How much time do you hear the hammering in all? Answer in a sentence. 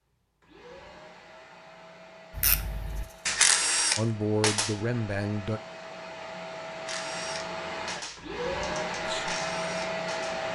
The hammering can't be heard in this clip.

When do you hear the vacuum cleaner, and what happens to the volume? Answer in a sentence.
You can hear the vacuum cleaner from 0.0 to 10.5 s, getting louder.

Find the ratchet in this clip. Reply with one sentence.
You can hear the ratchet from 2.4 to 4.8 s and from 6.8 to 10.4 s.